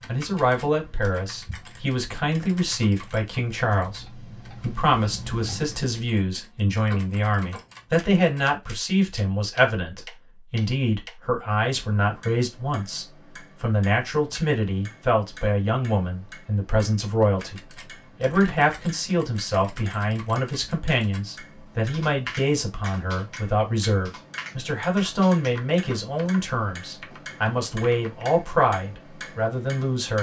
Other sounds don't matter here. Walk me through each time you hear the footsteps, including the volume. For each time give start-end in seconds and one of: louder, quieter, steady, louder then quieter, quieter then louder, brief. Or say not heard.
not heard.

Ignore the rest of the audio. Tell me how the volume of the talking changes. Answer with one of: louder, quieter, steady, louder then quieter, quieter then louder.
steady.